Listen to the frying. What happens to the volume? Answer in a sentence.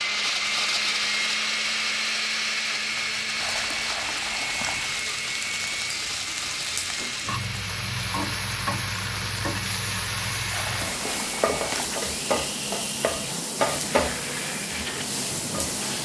The loudness of the frying goes up.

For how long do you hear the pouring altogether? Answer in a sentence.
You can hear the pouring for 3 seconds altogether.